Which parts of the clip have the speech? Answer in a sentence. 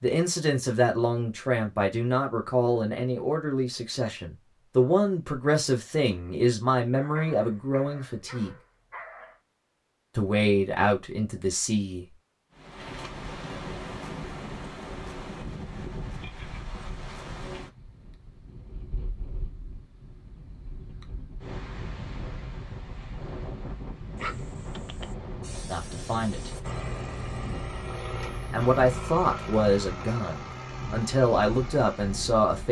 The speech can be heard from 0.0 to 8.6 s, from 10.2 to 12.1 s, from 25.7 to 26.5 s and from 28.2 to 32.6 s.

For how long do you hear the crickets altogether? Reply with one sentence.
The crickets can't be heard in this clip.